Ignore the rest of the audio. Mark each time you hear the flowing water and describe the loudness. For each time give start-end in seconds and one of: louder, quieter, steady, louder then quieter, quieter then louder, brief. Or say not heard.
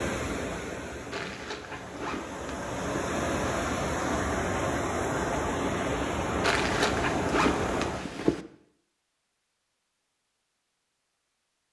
0.0-8.1 louder.